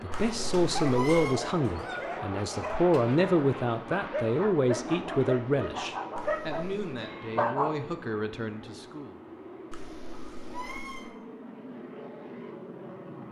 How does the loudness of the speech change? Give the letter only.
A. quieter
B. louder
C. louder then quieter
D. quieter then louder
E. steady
A.